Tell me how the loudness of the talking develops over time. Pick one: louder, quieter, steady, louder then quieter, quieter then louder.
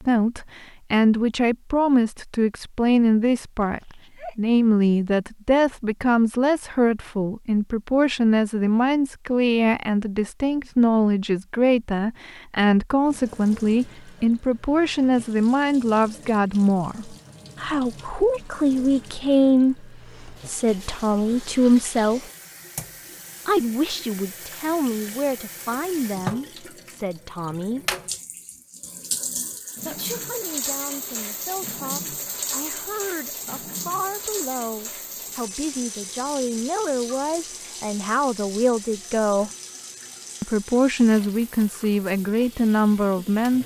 quieter then louder.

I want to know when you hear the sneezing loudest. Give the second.
30 s.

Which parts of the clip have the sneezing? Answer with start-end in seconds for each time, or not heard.
3.6-4.3, 29.6-30.2.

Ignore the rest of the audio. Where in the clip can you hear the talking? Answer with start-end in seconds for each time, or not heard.
0.0-22.3, 23.4-27.9, 29.9-39.5, 40.4-43.6.